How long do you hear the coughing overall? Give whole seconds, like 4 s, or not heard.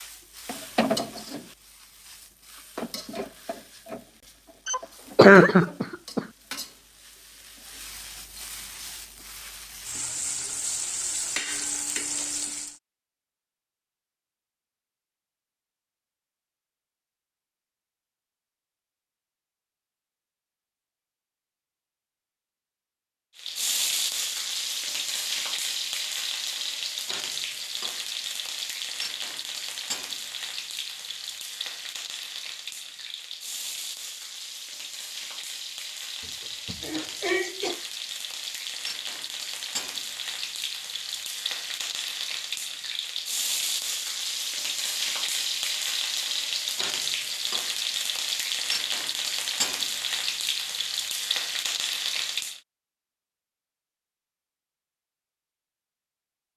3 s.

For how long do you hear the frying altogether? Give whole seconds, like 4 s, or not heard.
42 s.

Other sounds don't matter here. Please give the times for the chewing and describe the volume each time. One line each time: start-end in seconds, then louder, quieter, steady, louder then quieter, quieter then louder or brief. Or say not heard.
not heard.